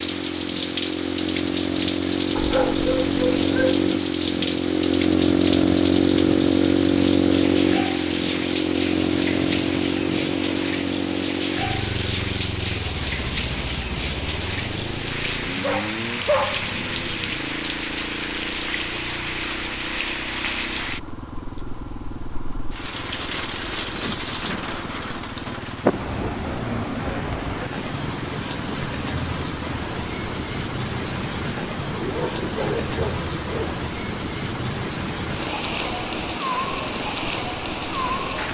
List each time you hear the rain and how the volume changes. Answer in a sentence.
You can hear the rain from 0.0 to 38.4 s, at a steady volume.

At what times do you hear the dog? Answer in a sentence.
You can hear the dog from 2.4 to 3.8 s, from 15.6 to 16.8 s and from 31.9 to 33.8 s.